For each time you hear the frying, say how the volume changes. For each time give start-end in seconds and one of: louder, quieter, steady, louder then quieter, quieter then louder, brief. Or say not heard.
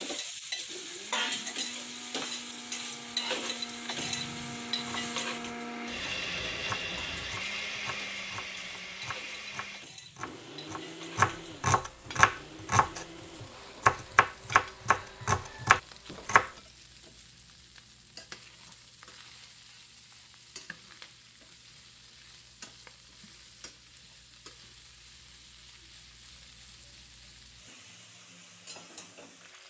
0.0-29.6 quieter.